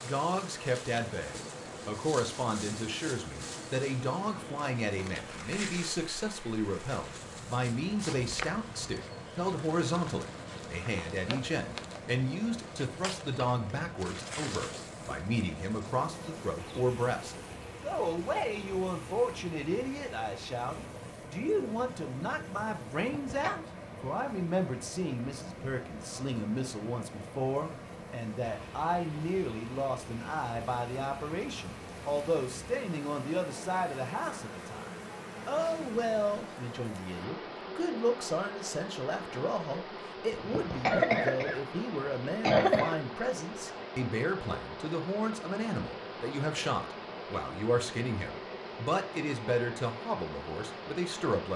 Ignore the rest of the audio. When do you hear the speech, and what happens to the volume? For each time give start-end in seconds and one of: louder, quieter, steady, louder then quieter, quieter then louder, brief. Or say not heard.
0.0-51.5 steady.